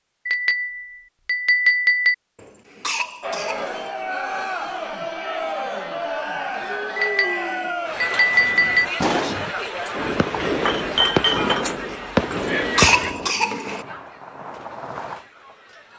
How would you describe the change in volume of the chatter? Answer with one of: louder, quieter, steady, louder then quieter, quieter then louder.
quieter.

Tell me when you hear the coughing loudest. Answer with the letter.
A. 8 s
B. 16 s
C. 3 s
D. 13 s
D.